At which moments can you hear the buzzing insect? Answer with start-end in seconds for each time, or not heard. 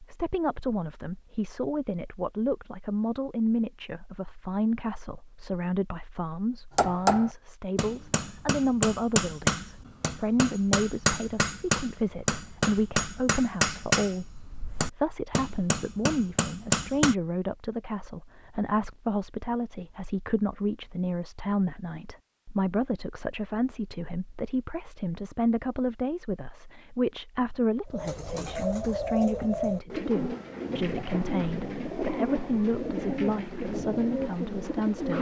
not heard.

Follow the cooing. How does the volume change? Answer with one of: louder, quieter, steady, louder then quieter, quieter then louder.
steady.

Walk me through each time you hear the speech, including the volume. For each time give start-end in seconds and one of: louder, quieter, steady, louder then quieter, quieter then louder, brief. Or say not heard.
0.0-35.1 steady.